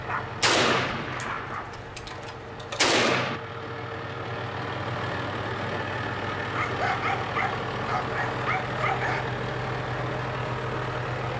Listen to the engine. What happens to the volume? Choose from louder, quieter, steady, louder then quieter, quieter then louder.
louder.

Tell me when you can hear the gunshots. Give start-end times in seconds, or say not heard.
0.4-3.4.